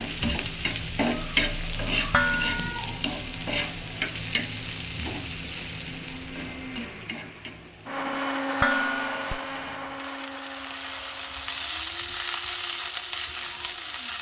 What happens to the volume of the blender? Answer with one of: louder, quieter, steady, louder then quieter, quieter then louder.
louder then quieter.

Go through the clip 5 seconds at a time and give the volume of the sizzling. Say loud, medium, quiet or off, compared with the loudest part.
loud, medium, loud.